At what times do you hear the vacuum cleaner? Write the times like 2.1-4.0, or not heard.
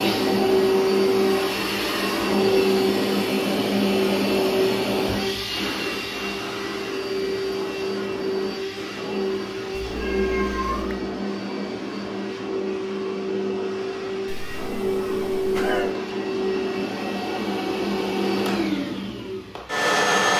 0.0-20.3.